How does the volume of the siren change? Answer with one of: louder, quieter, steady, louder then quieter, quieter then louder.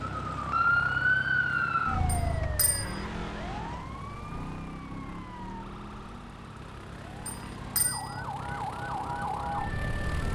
quieter then louder.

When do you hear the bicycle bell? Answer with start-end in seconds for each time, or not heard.
2.0-3.0, 7.2-8.2.